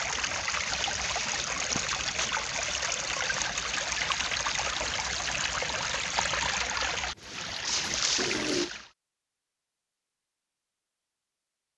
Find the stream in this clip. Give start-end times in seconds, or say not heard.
0.0-8.9.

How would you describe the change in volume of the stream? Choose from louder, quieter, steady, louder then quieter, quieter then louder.
steady.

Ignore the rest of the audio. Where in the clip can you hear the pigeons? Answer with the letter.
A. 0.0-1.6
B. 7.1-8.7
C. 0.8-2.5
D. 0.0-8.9
B.